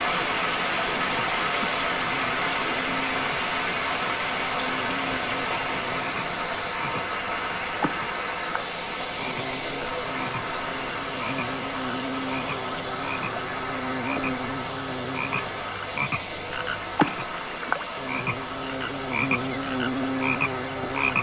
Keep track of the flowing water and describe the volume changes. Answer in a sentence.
The loudness of the flowing water goes down.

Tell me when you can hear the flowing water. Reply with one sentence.
The flowing water can be heard from 0.0 to 21.1 s.